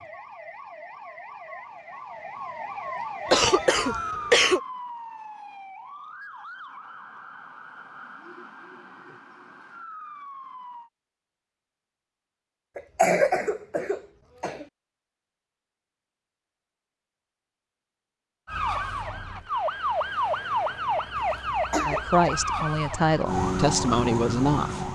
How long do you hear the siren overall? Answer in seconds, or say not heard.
17 s.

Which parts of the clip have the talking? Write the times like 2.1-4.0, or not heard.
21.8-24.8.